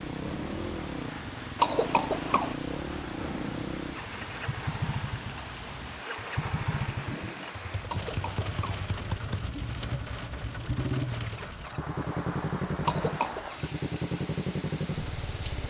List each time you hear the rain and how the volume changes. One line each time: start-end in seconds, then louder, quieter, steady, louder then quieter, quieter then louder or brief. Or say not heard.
0.0-15.6 steady.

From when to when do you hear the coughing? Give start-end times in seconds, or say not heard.
1.6-2.5, 7.8-8.8, 12.8-13.4.